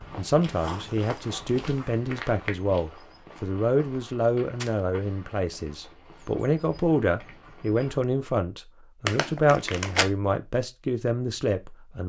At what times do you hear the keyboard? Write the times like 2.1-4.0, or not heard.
not heard.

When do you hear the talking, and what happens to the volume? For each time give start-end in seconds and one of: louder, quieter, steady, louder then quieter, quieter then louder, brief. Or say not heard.
0.1-12.0 steady.